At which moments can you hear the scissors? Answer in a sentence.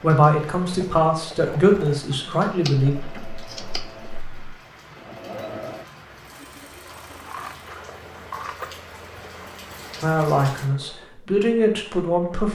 You can hear the scissors from 2.6 to 4.5 s and from 6.8 to 8.7 s.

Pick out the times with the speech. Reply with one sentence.
The speech can be heard from 0.0 to 3.0 s and from 10.0 to 12.5 s.